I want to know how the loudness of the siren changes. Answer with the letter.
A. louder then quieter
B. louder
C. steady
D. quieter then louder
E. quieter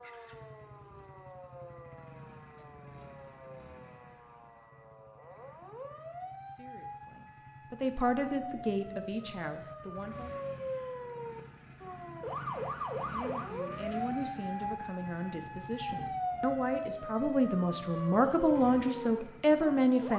B.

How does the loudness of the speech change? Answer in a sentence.
The volume of the speech goes down, then up.